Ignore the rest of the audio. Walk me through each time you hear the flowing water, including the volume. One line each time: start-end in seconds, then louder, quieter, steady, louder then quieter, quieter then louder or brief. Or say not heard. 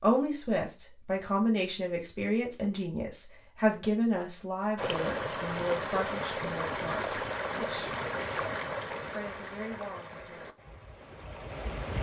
4.8-11.9 quieter.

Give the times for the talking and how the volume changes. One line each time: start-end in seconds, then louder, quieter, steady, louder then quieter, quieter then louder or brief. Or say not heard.
0.0-10.6 quieter.